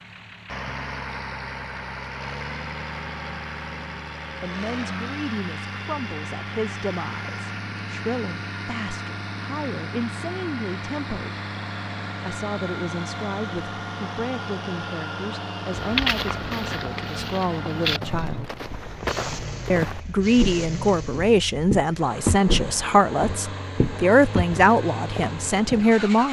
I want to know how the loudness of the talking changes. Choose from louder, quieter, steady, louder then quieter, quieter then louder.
louder.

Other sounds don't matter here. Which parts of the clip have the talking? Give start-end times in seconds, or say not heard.
4.4-11.4, 12.2-18.5, 19.7-26.2.